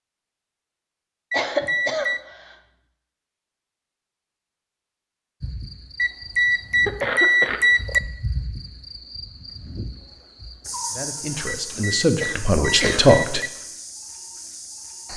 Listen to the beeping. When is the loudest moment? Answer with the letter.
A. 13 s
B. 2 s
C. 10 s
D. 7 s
D.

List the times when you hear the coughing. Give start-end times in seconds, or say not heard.
1.3-2.5, 6.8-7.6, 11.8-13.2.